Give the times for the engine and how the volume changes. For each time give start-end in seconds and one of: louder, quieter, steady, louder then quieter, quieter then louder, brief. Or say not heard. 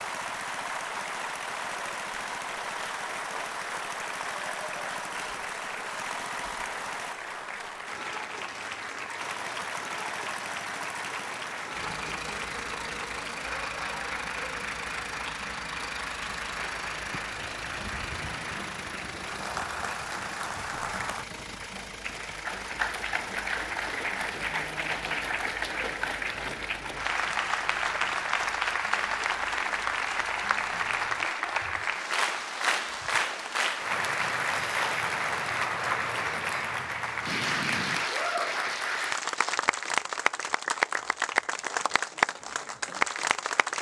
0.0-7.2 steady
9.2-31.2 quieter.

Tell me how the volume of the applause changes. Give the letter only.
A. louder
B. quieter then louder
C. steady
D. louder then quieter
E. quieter
A.